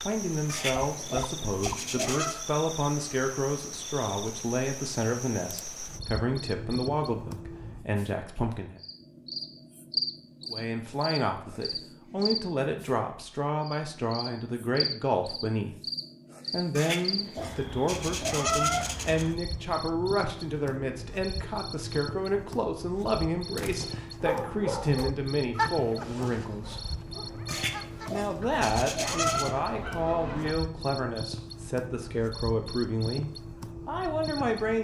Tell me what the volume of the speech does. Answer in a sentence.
The volume of the speech stays about the same.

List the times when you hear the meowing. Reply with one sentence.
The meowing can be heard from 0.5 to 2.4 s, from 16.8 to 19.2 s and from 27.4 to 29.6 s.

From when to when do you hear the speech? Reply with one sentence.
The speech can be heard from 0.0 to 8.8 s, from 10.4 to 15.8 s, from 16.5 to 26.9 s and from 28.1 to 34.8 s.